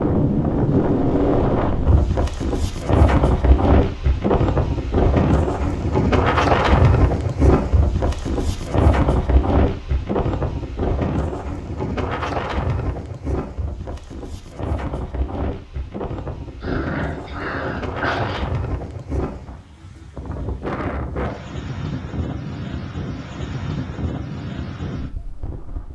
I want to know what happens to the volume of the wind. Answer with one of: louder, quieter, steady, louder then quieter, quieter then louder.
quieter.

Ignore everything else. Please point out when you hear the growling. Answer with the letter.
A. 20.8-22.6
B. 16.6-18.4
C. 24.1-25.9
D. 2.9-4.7
B.